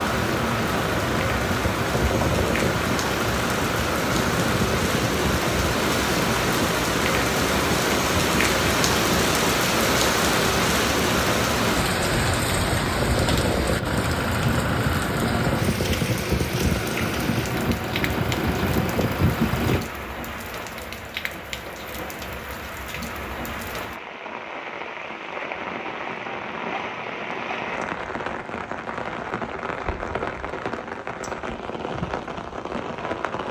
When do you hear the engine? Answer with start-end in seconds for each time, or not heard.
0.0-19.8.